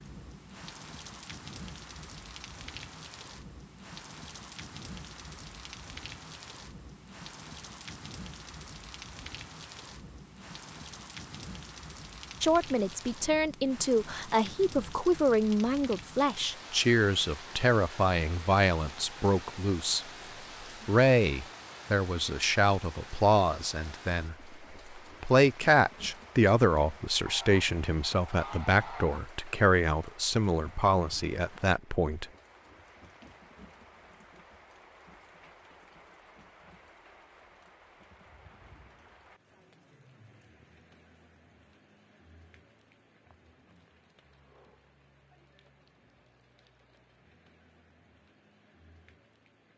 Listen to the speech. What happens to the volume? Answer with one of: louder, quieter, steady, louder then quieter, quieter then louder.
steady.